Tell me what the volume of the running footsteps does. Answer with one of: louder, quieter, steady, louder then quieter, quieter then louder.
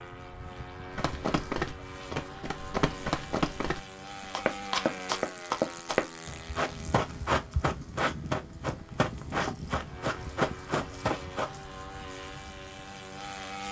steady.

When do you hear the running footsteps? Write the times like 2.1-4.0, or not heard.
0.9-11.6.